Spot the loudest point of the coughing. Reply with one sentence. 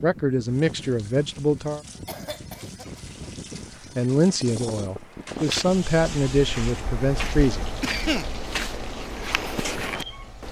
The loudest moment of the coughing is at 8 seconds.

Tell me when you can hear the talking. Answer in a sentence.
The talking can be heard from 0.0 to 1.8 s and from 4.0 to 7.7 s.